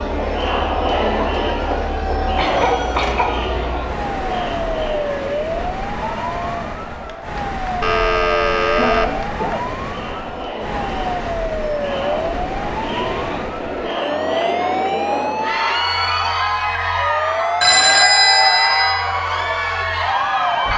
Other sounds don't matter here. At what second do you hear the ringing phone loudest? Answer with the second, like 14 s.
18 s.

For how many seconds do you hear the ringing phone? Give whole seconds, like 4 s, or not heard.
4 s.